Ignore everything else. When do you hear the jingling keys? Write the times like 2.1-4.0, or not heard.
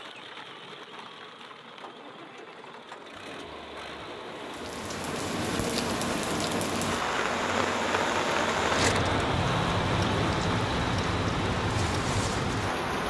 not heard.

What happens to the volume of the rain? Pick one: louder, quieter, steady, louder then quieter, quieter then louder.
steady.